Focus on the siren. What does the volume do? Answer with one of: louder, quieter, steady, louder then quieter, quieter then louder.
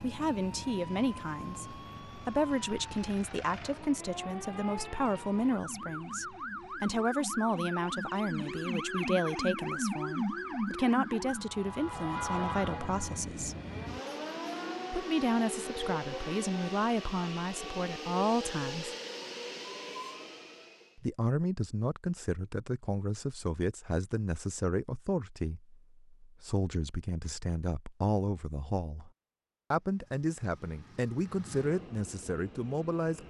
louder then quieter.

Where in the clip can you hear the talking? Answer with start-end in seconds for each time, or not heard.
0.0-13.6, 14.9-18.9, 20.9-29.1, 29.7-33.2.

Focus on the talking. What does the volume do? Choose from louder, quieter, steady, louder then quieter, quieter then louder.
steady.